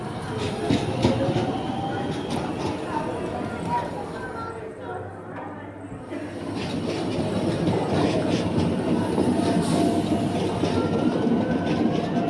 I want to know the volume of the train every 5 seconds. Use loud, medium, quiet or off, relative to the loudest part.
medium, loud, loud.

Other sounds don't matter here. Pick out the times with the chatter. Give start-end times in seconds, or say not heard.
0.0-12.2.